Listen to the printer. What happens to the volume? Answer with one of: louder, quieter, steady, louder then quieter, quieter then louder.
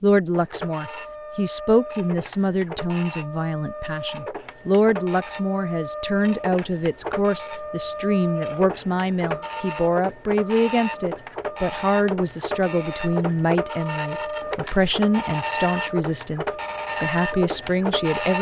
louder.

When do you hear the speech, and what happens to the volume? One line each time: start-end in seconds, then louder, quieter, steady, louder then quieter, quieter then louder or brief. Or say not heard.
0.0-18.3 steady.